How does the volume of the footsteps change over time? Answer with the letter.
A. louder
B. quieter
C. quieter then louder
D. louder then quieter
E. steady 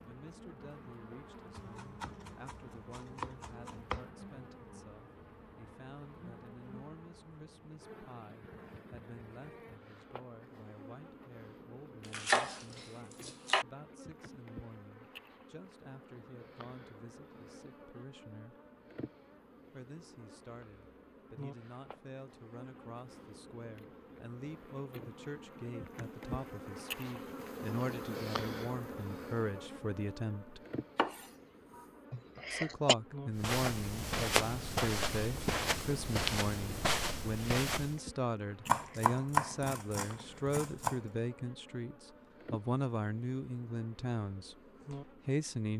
E.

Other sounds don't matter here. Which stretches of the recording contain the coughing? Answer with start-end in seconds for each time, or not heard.
32.1-33.0.